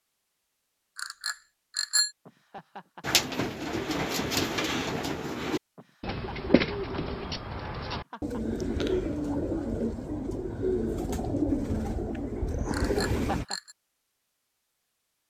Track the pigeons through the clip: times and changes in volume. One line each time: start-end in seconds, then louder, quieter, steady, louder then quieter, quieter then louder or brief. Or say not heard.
3.0-13.4 steady.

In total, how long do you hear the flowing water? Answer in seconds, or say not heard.
not heard.